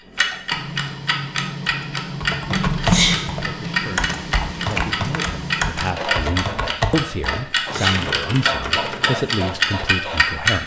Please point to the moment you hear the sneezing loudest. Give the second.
3 s.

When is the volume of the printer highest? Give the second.
3 s.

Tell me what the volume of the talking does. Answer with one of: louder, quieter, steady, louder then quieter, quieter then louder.
louder.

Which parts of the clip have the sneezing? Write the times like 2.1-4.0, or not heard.
2.8-3.2, 7.6-8.0.